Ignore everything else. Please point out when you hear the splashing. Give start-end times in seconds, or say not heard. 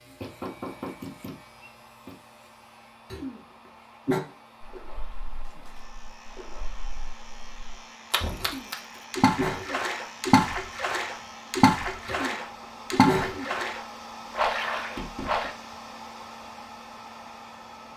4.6-15.5.